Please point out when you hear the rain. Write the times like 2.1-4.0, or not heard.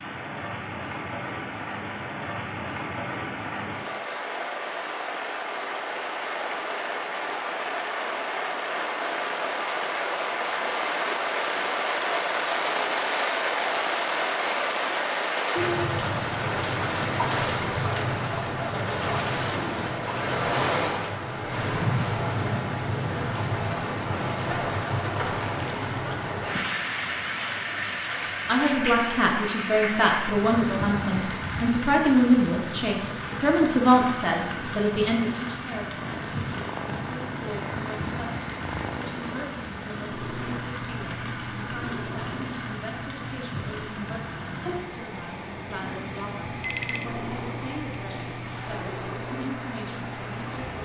0.0-50.8.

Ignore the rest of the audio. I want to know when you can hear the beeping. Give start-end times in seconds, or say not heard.
46.5-47.1.